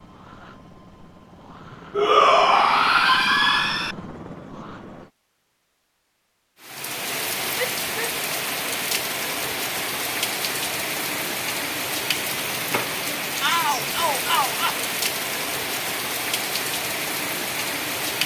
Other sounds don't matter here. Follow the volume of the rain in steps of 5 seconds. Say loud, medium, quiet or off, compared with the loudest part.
off, loud, loud, loud.